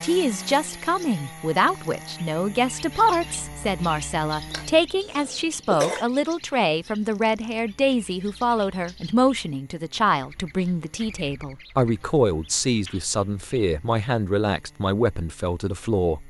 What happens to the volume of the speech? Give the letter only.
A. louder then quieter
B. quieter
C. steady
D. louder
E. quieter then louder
C.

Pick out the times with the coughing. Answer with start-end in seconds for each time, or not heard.
4.5-6.0.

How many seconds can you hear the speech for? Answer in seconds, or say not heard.
16 s.